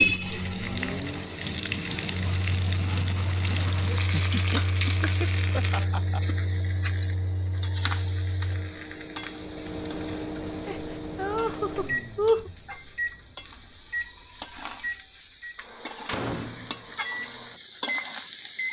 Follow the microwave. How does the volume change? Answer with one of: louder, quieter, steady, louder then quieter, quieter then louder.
steady.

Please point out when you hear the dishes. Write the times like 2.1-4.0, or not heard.
not heard.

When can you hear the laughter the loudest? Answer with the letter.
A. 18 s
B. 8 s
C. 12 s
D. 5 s
C.